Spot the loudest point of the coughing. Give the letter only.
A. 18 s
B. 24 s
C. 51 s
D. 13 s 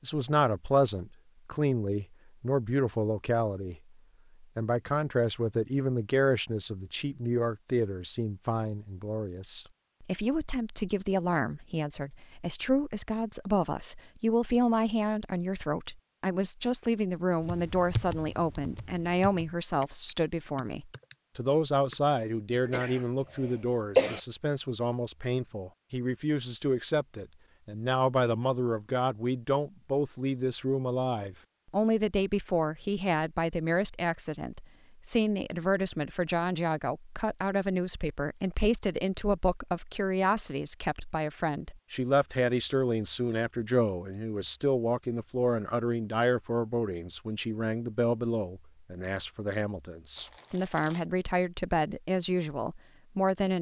B.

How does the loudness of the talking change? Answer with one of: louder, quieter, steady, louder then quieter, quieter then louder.
steady.